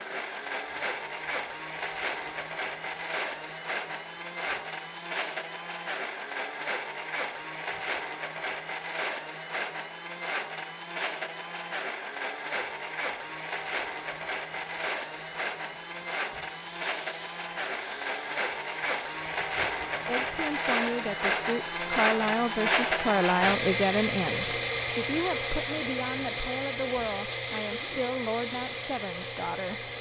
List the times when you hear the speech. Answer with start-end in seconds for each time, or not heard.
20.1-29.9.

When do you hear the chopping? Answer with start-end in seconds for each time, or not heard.
not heard.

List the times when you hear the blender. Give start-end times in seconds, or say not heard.
0.0-29.9.